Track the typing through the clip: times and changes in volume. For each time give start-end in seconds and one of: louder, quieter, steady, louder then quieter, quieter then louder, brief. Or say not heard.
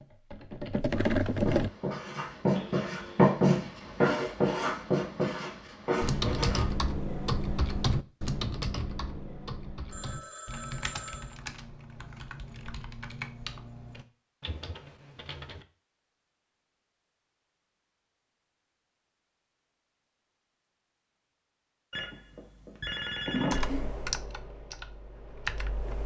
0.0-1.7 brief
6.0-15.7 quieter
23.5-26.0 brief.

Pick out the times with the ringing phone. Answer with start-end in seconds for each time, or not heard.
2.5-3.3, 9.9-11.3, 21.9-23.9.